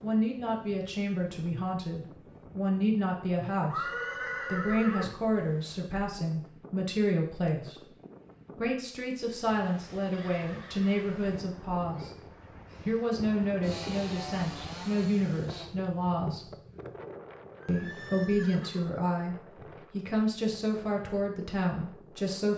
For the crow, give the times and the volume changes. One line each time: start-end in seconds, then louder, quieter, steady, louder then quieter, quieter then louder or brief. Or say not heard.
not heard.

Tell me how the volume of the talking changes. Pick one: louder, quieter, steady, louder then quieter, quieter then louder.
steady.